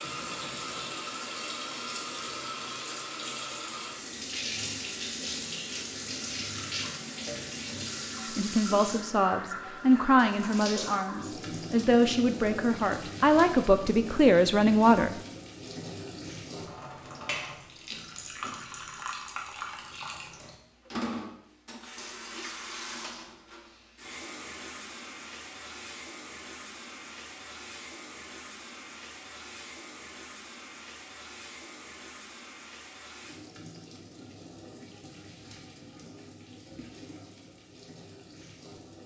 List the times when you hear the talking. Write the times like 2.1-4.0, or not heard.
8.3-15.2.